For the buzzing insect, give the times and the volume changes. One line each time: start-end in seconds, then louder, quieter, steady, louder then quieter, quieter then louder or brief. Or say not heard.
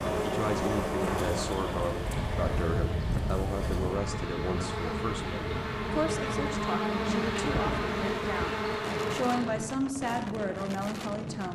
0.0-9.7 quieter then louder.